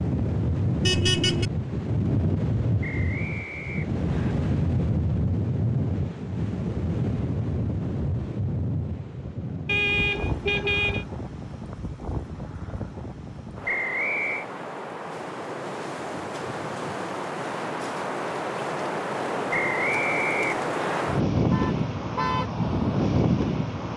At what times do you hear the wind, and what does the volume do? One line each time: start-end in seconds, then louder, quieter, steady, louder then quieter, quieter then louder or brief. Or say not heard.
0.0-23.9 quieter then louder.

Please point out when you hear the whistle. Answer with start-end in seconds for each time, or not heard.
2.8-4.3, 13.7-14.4, 19.5-21.1.